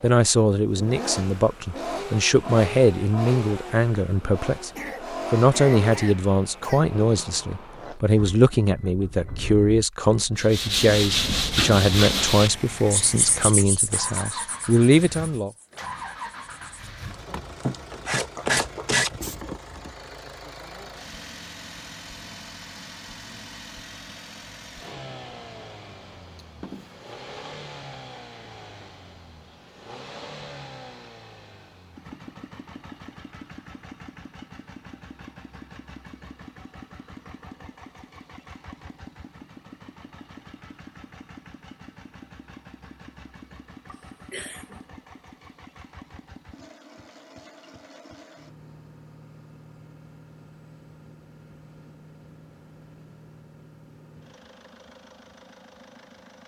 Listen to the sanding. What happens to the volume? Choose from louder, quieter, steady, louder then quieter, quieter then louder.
quieter then louder.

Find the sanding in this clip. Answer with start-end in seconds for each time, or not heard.
10.3-19.4.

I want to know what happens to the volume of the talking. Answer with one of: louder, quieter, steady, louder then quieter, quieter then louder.
steady.